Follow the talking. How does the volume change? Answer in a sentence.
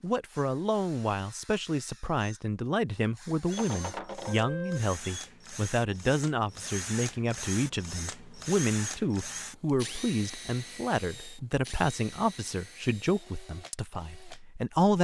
The loudness of the talking stays about the same.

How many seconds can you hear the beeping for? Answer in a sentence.
You can hear the beeping for 2 seconds altogether.